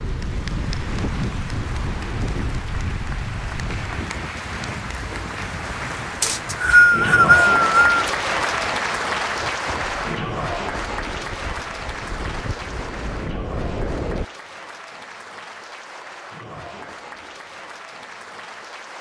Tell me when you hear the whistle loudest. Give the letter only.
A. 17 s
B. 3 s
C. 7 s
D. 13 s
C.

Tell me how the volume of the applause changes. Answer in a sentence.
The volume of the applause goes up, then down.